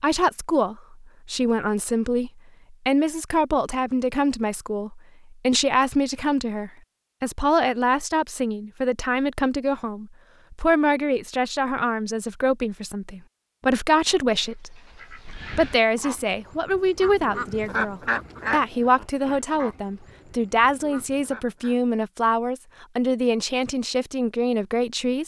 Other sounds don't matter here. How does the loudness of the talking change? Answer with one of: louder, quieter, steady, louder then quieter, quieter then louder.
steady.